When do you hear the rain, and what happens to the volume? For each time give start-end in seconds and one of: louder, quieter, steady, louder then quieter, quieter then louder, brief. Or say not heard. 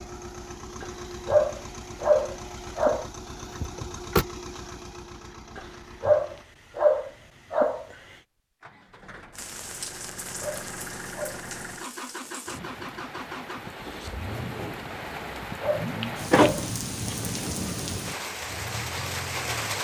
9.3-19.7 louder.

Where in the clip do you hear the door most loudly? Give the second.
16 s.